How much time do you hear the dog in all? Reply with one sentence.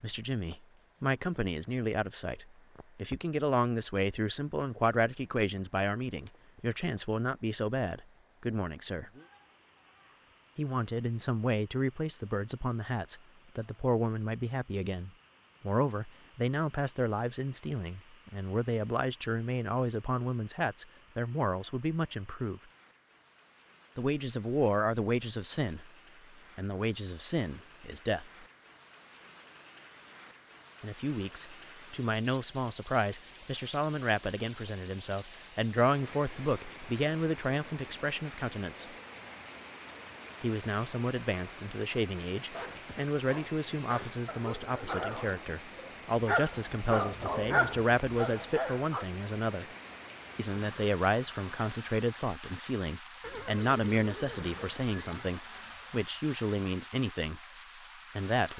The dog can be heard for 7 seconds in total.